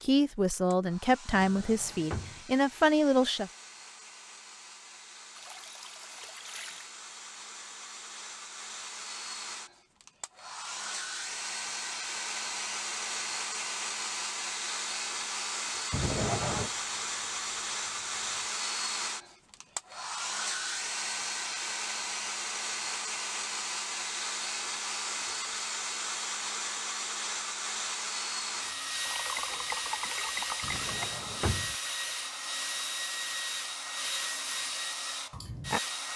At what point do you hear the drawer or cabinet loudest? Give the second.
16 s.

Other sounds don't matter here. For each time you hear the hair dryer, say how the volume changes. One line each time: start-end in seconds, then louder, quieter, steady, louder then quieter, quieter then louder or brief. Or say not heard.
0.0-36.1 louder.